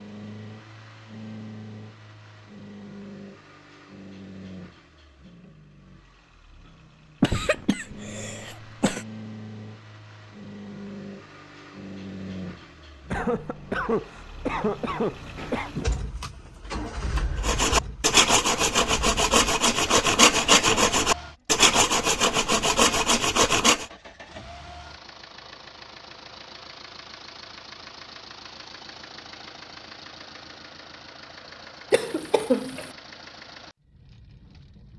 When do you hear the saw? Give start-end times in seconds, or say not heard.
17.4-23.9.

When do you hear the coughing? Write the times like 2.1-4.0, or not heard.
7.2-9.1, 13.1-15.7, 31.9-32.9.